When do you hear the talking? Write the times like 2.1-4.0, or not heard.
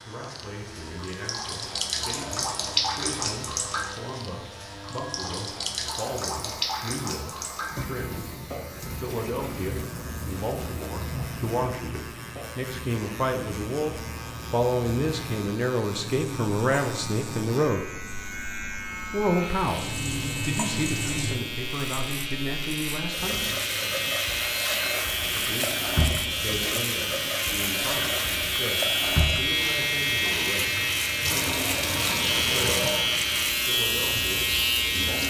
0.0-8.4, 9.0-18.0, 19.1-23.5, 25.3-30.9, 32.4-32.9, 33.6-35.2.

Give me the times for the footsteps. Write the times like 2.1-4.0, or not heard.
not heard.